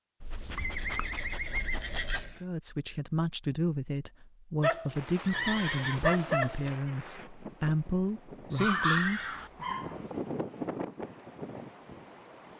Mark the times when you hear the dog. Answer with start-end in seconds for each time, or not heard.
0.2-2.4, 4.6-6.8, 8.5-10.0.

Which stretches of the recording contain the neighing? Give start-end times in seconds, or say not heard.
0.6-2.5, 5.2-6.2, 8.6-9.5.